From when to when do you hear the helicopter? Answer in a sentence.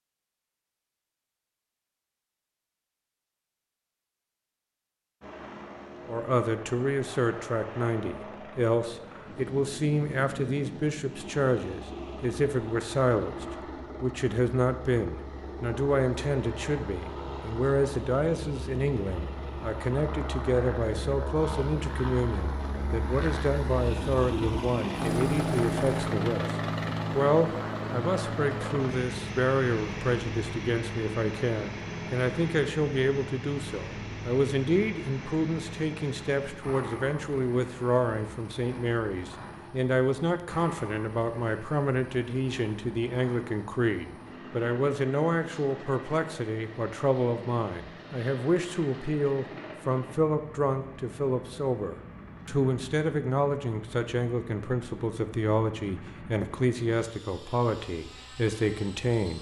You can hear the helicopter from 5.2 to 59.3 s.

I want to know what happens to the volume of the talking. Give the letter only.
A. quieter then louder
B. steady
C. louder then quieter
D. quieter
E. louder
B.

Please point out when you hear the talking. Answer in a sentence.
The talking can be heard from 6.0 to 59.3 s.